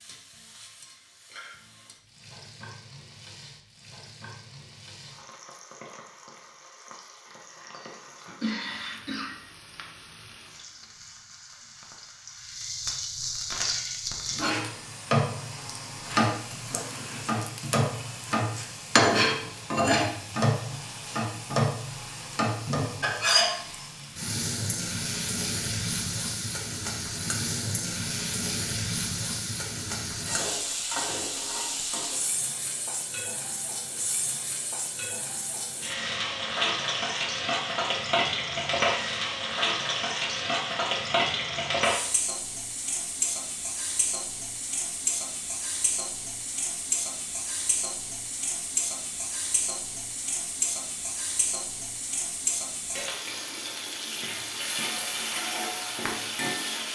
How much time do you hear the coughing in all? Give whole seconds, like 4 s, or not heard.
2 s.